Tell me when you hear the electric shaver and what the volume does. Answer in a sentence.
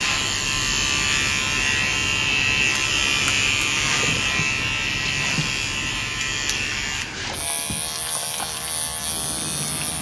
The electric shaver can be heard from 0.0 to 9.9 s, getting quieter.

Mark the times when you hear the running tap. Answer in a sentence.
The running tap can be heard from 3.8 to 5.5 s and from 7.2 to 9.9 s.